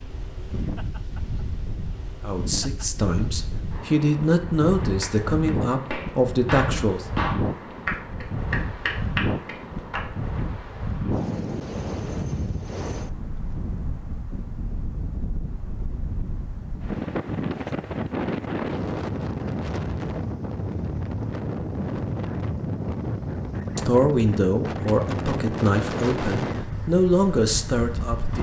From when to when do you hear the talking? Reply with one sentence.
The talking can be heard from 2.2 to 7.0 s and from 23.8 to 28.3 s.